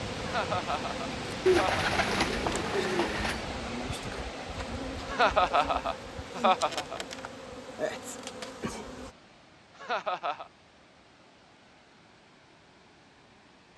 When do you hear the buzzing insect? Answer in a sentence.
You can hear the buzzing insect from 0.0 to 9.2 s.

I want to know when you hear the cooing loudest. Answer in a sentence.
The volume of the cooing peaks at 2 seconds.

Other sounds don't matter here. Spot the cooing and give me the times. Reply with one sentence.
The cooing can be heard from 1.4 to 3.5 s.